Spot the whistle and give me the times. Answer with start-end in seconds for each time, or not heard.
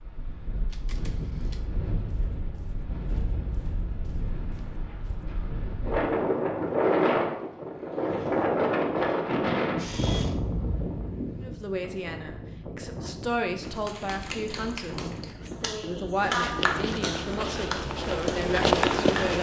not heard.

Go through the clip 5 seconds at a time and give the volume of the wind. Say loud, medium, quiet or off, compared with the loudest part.
quiet, loud, medium, quiet.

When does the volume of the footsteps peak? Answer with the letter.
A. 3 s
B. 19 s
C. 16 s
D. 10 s
B.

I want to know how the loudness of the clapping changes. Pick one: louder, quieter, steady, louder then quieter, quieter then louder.
louder then quieter.